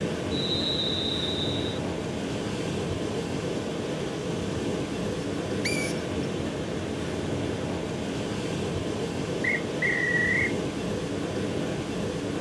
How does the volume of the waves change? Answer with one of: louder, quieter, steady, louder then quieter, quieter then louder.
steady.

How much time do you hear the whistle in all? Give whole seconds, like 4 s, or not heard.
3 s.